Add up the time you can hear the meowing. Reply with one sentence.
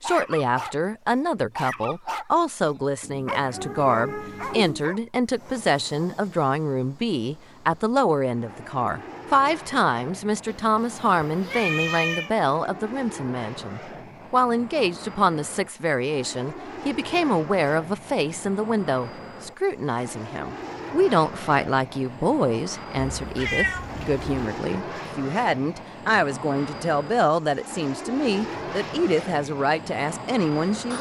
You can hear the meowing for 5 seconds altogether.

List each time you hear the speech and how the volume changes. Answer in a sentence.
The speech can be heard from 0.0 to 30.9 s, at a steady volume.